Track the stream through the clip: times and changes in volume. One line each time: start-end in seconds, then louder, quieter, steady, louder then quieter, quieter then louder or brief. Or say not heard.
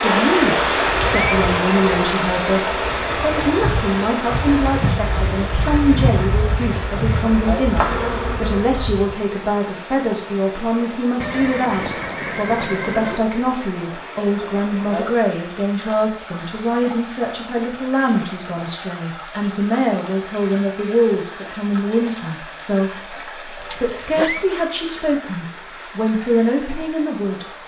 0.0-27.6 quieter.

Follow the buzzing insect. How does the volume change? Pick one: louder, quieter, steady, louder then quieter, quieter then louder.
louder.